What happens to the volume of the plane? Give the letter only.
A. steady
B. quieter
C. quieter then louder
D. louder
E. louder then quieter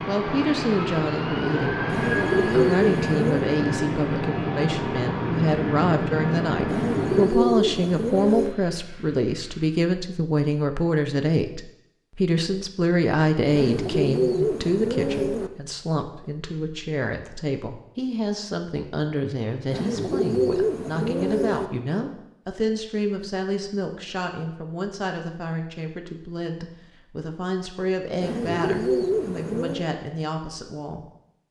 B.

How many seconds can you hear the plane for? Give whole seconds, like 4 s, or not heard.
10 s.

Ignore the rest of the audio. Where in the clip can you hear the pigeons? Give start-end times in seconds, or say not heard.
1.9-3.5, 6.7-8.6, 13.5-15.5, 19.7-21.7, 28.2-29.9.